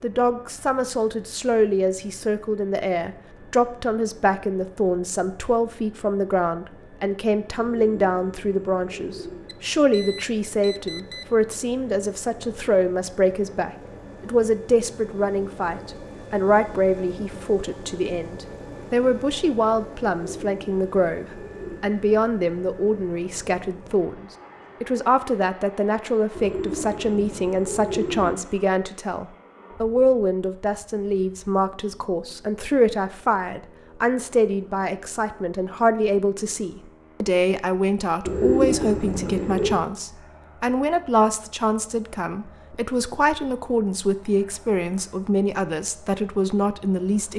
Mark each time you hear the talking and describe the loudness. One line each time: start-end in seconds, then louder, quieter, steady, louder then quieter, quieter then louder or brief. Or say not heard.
0.0-47.3 steady.